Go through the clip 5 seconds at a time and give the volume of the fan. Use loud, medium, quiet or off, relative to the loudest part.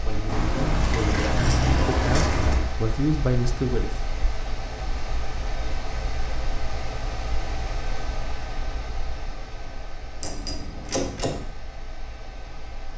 loud, loud, medium.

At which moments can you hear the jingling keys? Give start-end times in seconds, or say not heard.
0.2-2.7, 10.2-11.4.